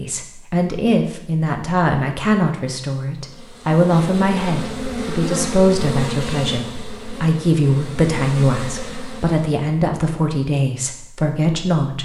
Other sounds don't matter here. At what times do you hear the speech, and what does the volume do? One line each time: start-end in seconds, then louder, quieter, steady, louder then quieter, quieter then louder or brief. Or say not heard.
0.0-12.0 steady.